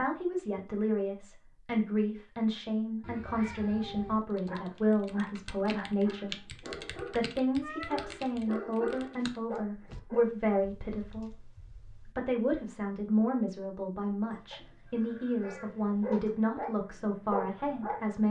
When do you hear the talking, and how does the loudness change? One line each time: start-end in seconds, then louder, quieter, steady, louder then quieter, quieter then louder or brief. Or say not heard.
0.0-18.2 steady.